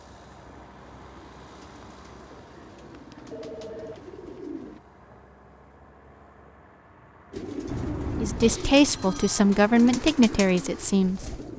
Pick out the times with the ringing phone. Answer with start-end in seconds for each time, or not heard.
3.3-4.2, 7.7-9.4.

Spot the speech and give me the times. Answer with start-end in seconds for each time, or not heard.
8.2-11.2.